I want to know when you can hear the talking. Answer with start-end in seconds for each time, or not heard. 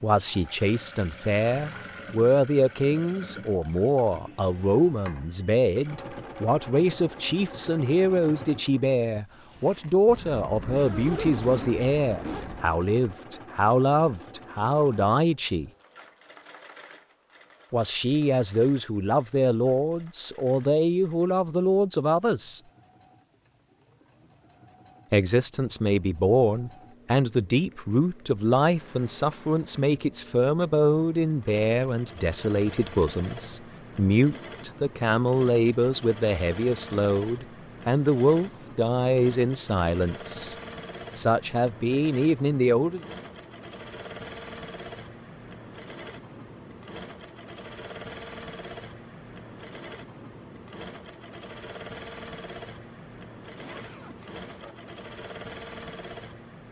0.0-15.7, 17.7-22.6, 25.1-40.5, 41.1-43.0.